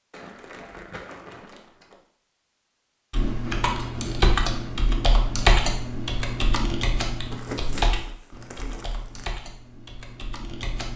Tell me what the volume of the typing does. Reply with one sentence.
The loudness of the typing goes down.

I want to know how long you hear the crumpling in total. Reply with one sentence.
You can hear the crumpling for 4 seconds altogether.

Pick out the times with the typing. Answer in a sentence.
You can hear the typing from 3.1 to 10.9 s.